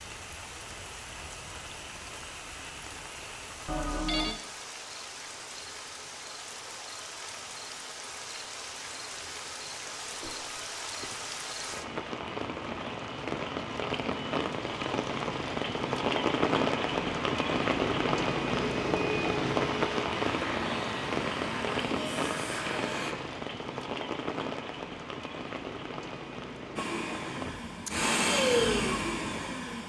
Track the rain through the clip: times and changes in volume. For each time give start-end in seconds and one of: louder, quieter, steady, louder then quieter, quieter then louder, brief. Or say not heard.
0.0-29.8 louder then quieter.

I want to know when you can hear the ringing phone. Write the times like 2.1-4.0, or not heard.
3.6-4.4.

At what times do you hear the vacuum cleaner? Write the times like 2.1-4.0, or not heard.
18.6-23.1, 26.8-29.8.